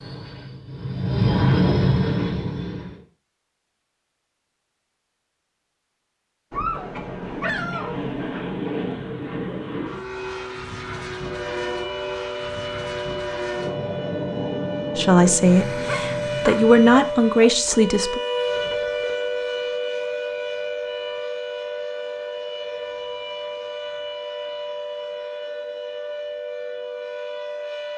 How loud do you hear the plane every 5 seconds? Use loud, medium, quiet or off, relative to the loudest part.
loud, medium, medium, medium, off, off.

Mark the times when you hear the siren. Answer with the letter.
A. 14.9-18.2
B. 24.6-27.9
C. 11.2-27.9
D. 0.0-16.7
C.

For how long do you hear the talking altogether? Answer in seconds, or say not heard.
3 s.